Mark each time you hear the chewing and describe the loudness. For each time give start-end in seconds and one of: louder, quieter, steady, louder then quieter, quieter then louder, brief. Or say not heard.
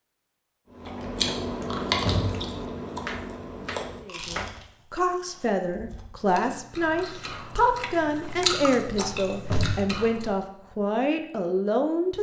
0.8-10.3 quieter then louder.